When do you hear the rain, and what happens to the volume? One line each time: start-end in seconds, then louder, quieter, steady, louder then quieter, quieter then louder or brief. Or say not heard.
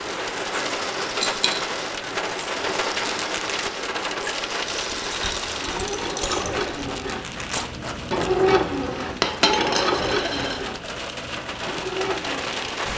0.0-12.9 quieter then louder.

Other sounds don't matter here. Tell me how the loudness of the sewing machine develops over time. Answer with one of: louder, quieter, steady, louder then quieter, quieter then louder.
louder then quieter.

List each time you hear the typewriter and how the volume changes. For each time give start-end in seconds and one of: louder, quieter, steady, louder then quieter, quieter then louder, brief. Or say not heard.
not heard.